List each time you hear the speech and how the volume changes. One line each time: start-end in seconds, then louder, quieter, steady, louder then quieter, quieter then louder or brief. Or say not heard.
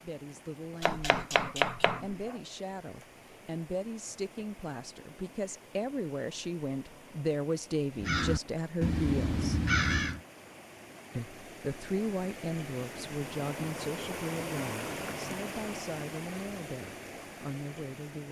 0.0-9.6 louder
11.2-18.2 quieter.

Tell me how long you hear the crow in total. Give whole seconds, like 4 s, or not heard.
2 s.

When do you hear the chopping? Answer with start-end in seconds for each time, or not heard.
0.8-2.4.